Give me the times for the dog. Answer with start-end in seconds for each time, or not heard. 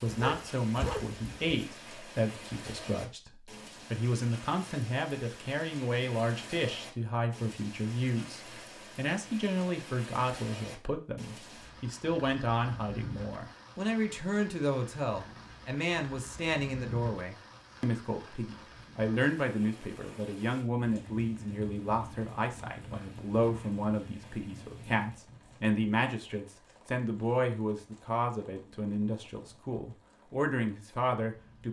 0.1-1.6.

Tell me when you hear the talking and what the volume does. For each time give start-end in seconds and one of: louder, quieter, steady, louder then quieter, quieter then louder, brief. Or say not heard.
0.0-31.6 steady.